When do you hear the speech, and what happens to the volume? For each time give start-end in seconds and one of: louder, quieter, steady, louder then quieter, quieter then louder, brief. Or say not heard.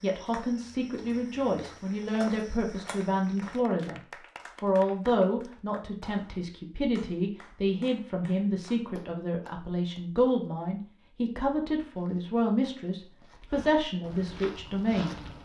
0.0-4.0 steady
4.6-15.2 steady.